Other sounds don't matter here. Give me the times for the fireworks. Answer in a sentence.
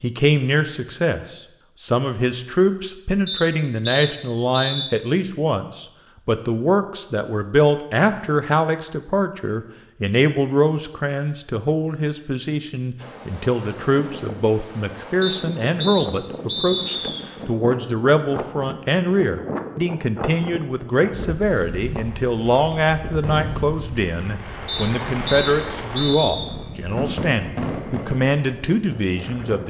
The fireworks can be heard from 21.9 to 28.2 s.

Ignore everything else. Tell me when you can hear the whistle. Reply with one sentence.
You can hear the whistle from 3.2 to 5.0 s, from 15.2 to 17.2 s and from 24.6 to 26.6 s.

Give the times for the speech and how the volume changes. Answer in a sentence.
You can hear the speech from 0.0 to 29.6 s, at a steady volume.